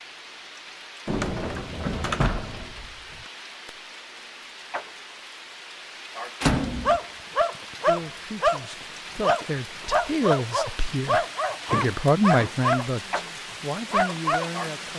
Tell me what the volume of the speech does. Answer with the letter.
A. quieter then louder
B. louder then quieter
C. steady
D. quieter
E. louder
B.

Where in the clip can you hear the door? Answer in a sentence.
The door can be heard from 1.1 to 3.2 s, from 6.4 to 7.0 s and from 11.7 to 12.6 s.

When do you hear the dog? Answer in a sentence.
The dog can be heard from 6.8 to 14.5 s.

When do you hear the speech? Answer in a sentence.
The speech can be heard from 7.8 to 14.9 s.